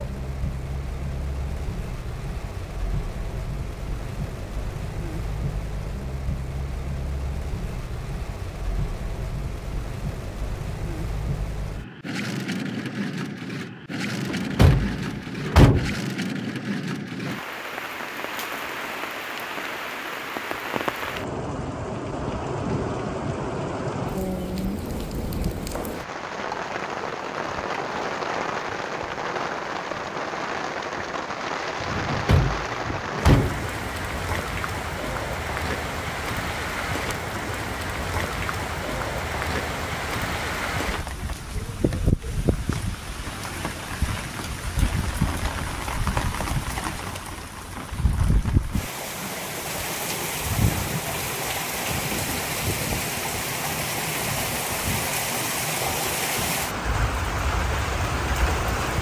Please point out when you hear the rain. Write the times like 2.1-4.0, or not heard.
0.0-58.9.